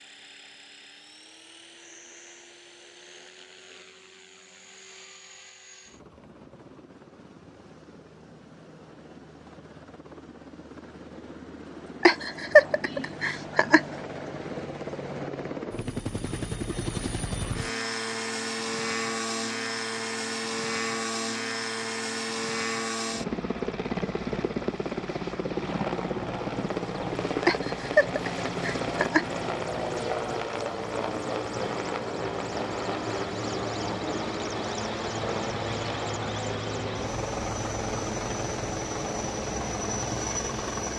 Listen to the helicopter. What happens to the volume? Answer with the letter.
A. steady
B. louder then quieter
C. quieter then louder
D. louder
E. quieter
D.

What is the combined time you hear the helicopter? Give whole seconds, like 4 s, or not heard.
41 s.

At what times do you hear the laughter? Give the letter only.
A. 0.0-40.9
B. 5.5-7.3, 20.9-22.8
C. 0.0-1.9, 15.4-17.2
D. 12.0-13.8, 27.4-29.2
D.